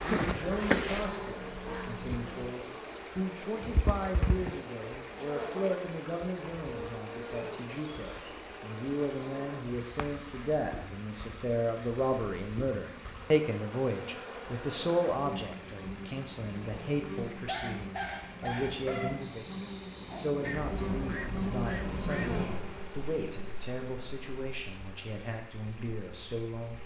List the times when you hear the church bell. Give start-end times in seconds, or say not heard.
not heard.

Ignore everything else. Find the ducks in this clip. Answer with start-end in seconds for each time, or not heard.
20.4-22.4.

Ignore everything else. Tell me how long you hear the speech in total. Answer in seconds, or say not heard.
27 s.